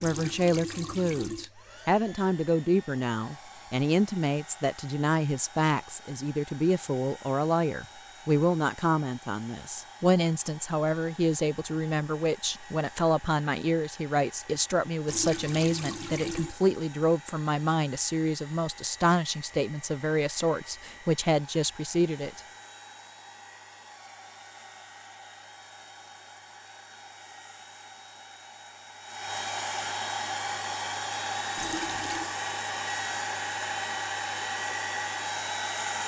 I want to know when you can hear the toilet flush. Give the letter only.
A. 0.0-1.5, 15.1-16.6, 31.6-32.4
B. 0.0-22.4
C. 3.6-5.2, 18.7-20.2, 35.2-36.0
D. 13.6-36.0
A.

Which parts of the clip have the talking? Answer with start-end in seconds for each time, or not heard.
0.0-22.4.